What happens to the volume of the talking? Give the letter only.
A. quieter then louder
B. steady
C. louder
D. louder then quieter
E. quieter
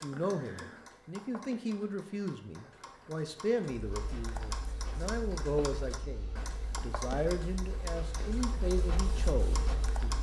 B.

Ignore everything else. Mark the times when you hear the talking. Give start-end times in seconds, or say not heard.
0.0-10.1.